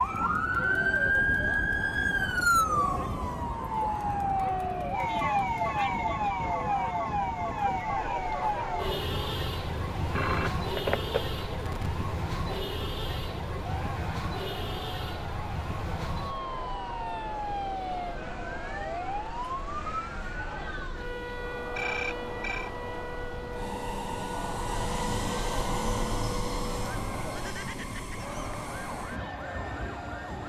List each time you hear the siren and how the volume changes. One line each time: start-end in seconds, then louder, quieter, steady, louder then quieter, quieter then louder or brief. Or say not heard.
0.0-30.4 quieter.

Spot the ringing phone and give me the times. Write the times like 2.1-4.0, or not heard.
9.9-11.9, 21.8-22.7.